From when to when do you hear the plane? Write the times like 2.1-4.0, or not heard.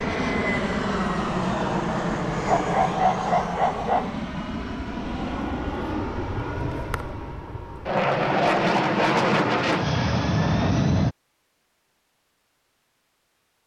0.0-11.2.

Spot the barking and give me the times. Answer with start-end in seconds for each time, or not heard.
2.5-4.1.